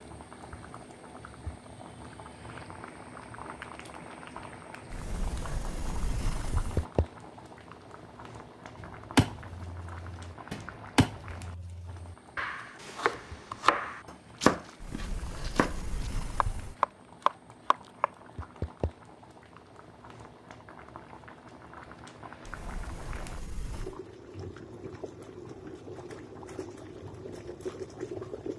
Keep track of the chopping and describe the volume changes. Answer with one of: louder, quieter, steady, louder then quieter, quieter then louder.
louder.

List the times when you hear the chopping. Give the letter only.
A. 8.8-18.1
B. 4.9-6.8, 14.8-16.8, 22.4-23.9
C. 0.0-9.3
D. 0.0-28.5
A.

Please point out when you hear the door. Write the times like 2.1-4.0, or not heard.
4.9-6.8, 14.8-16.8, 22.4-23.9.